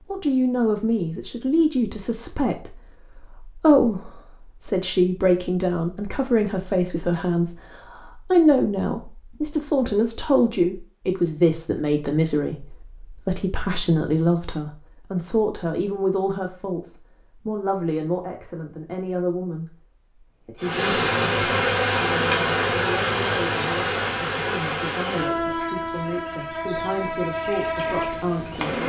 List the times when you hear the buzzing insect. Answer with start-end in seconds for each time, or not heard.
20.6-28.8.